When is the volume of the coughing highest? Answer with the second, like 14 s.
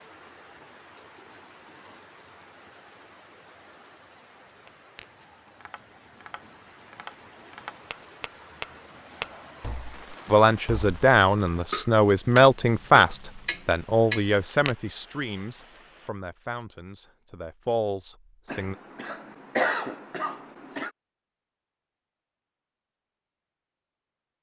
20 s.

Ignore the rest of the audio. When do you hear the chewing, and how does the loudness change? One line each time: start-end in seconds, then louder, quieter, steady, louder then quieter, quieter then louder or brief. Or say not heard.
not heard.